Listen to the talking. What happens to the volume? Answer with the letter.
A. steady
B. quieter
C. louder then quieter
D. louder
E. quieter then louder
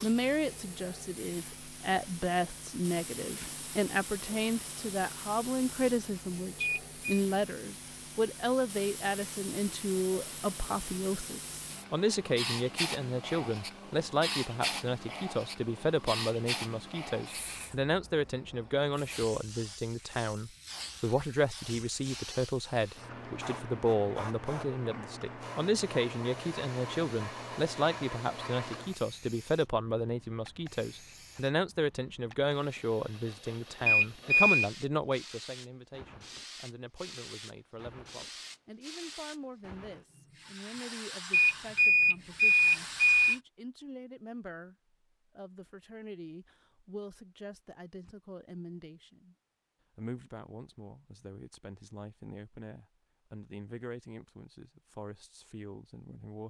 B.